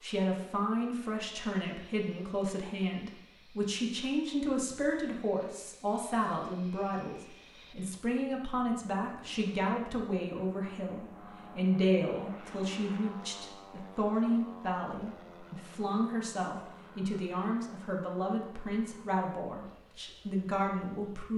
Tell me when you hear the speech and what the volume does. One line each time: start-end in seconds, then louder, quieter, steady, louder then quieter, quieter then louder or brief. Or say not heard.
0.0-21.3 steady.